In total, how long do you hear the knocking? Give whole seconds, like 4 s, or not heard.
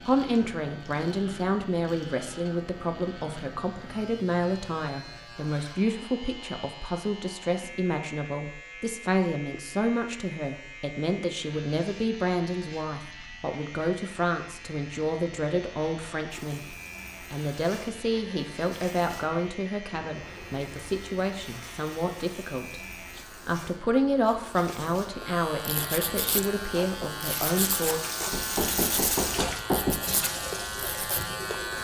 2 s.